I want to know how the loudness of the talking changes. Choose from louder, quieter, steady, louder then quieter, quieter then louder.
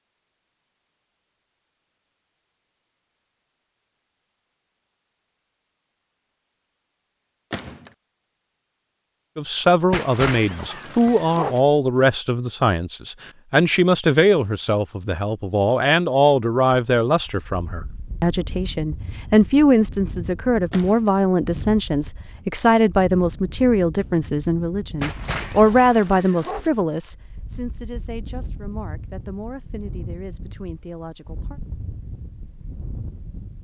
quieter.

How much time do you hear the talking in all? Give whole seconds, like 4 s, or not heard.
22 s.